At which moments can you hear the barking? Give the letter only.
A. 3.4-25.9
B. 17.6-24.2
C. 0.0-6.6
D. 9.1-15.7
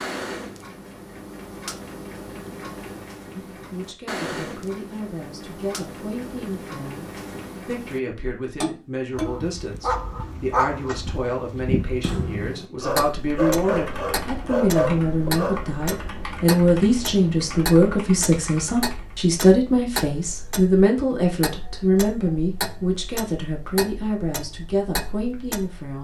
D.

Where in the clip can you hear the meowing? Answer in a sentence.
The meowing can't be heard in this clip.